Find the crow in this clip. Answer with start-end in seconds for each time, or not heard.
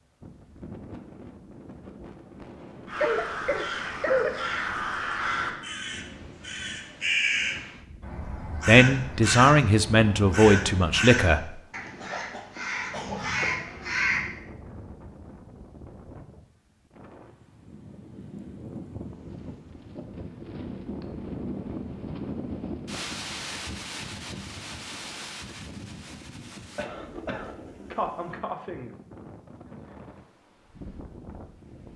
2.9-14.3.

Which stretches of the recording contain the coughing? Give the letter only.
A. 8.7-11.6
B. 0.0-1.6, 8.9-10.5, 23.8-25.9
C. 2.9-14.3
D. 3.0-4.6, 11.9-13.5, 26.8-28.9
D.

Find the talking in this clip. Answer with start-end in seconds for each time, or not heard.
8.7-11.6.